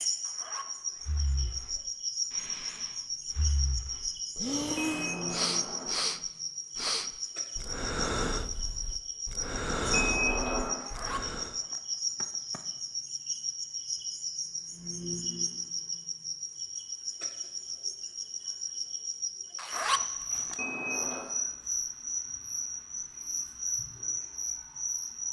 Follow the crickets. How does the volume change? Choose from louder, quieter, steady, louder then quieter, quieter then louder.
steady.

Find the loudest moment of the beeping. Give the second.
10 s.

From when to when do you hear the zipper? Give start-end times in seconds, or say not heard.
0.2-1.2, 10.8-12.6, 19.6-20.6.